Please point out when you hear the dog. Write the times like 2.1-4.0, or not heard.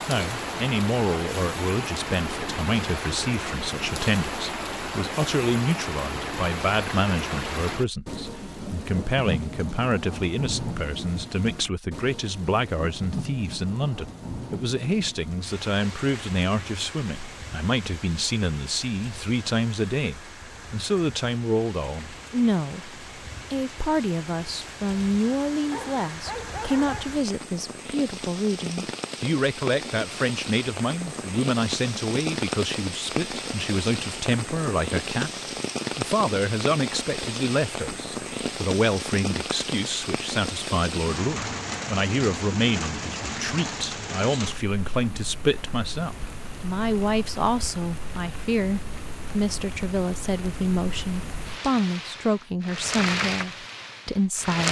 25.7-27.1.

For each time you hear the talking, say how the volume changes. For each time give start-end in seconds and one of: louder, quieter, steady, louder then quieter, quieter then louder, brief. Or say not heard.
0.1-54.6 steady.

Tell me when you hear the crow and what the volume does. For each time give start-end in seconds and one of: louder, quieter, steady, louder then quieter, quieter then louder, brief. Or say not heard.
not heard.